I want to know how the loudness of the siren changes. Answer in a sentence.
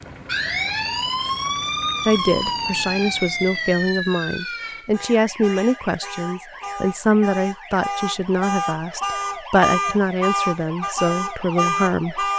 The loudness of the siren goes down, then up.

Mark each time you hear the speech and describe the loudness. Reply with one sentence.
The speech can be heard from 2.0 to 12.3 s, at a steady volume.